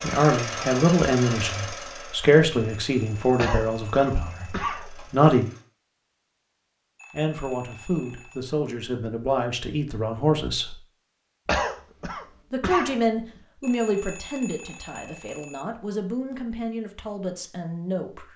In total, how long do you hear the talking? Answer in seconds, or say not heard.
15 s.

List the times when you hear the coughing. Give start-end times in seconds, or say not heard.
3.4-4.9, 11.4-13.4.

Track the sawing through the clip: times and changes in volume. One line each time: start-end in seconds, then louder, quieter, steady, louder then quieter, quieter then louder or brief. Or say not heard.
not heard.